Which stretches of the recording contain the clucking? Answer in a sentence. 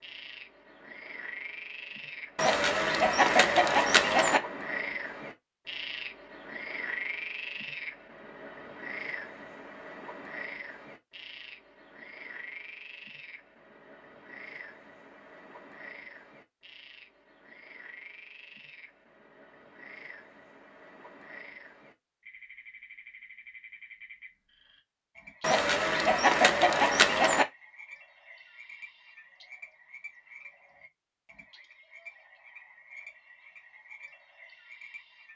You can hear the clucking from 2.4 to 4.4 s and from 25.4 to 27.4 s.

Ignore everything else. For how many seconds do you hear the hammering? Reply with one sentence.
The hammering can't be heard in this clip.